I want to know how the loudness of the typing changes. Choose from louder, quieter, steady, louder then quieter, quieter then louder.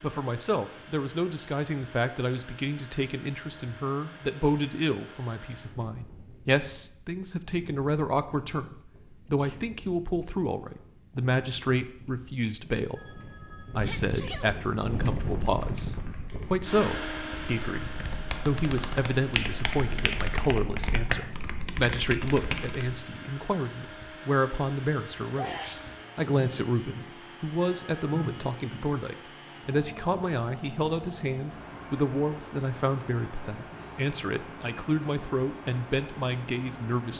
louder.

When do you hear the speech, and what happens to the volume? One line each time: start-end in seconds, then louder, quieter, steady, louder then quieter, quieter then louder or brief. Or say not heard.
0.0-37.1 steady.